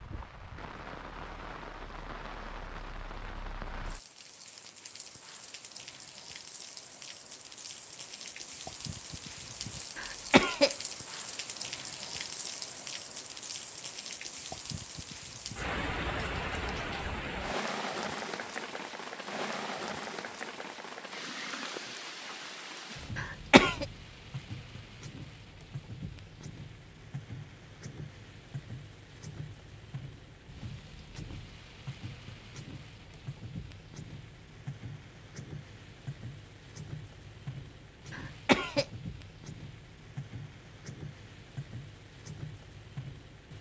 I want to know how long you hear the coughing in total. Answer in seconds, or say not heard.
2 s.